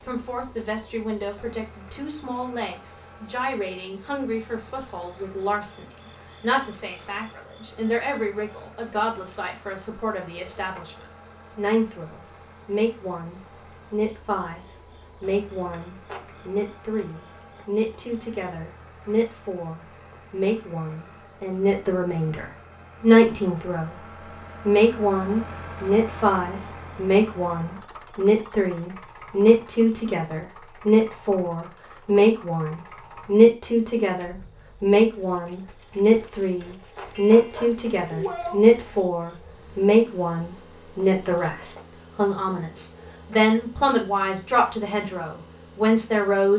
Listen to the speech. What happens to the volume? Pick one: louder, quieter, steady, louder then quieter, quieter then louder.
louder.